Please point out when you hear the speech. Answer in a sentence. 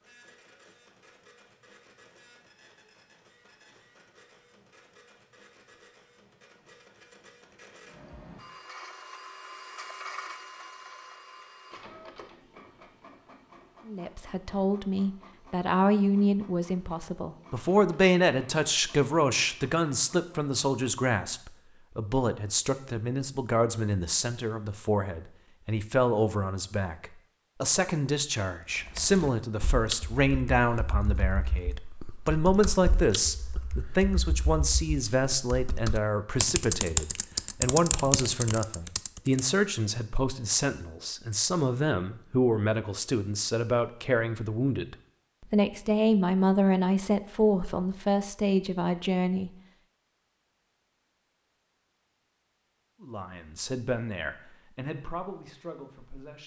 You can hear the speech from 13.8 to 49.5 s and from 53.0 to 56.4 s.